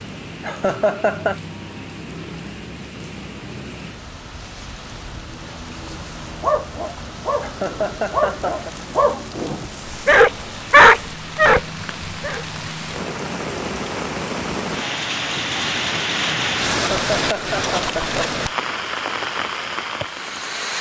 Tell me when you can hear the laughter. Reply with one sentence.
You can hear the laughter from 0.4 to 1.4 s, from 7.4 to 8.7 s and from 16.8 to 18.4 s.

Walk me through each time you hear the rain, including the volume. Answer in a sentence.
The rain can be heard from 0.0 to 20.7 s, getting louder.